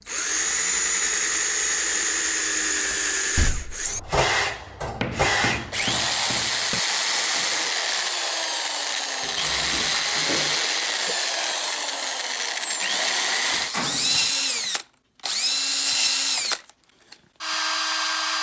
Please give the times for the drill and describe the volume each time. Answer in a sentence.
The drill can be heard from 0.1 to 18.3 s, at a steady volume.